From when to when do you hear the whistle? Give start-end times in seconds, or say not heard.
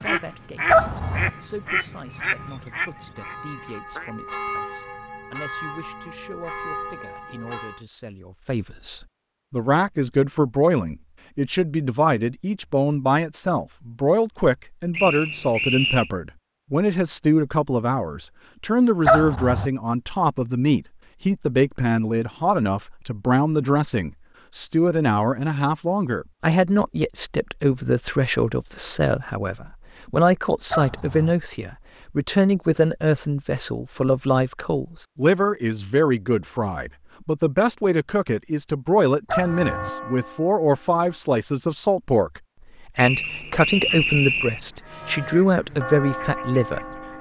14.9-16.1, 43.0-44.6.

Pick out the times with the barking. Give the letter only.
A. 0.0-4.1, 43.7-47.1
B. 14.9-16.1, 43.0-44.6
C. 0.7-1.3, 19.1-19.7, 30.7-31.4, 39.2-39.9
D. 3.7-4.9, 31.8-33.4
C.